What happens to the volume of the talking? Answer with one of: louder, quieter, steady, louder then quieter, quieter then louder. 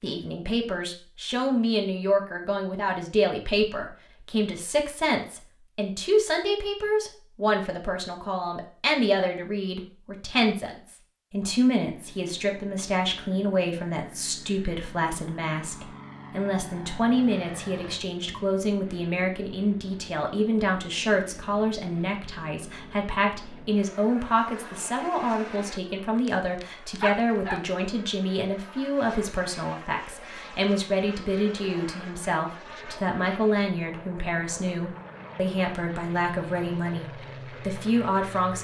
steady.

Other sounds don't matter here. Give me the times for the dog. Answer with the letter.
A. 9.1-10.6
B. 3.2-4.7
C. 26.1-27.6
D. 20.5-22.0
C.